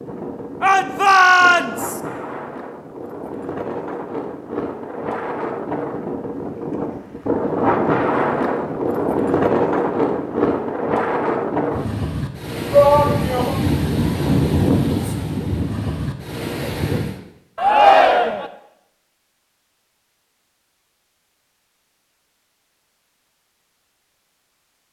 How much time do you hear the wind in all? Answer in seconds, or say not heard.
17 s.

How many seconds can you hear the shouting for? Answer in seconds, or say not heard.
3 s.